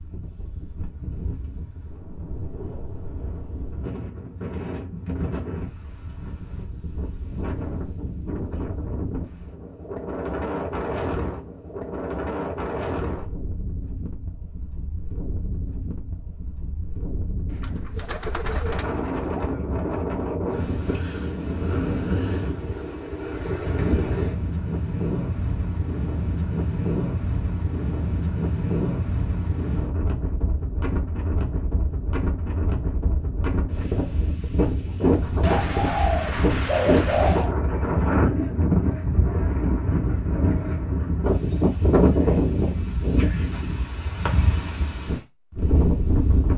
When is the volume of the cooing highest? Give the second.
37 s.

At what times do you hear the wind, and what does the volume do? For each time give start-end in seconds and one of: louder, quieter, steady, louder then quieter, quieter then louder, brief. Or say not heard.
0.0-46.5 louder.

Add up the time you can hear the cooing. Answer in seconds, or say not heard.
4 s.